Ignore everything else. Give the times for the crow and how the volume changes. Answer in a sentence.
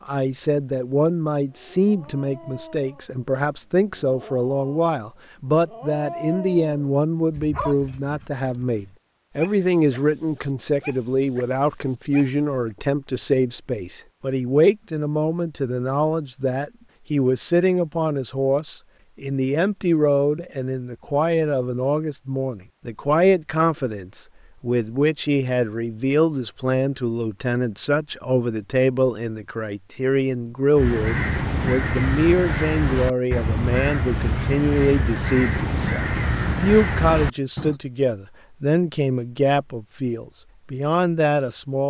The crow can be heard from 30.8 to 37.8 s, at a steady volume.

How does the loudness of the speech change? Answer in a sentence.
The volume of the speech stays about the same.